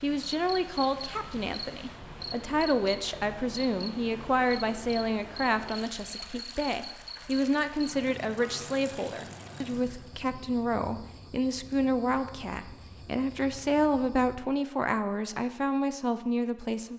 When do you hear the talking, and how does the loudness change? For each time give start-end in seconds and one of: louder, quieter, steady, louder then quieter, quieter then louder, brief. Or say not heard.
0.0-16.9 steady.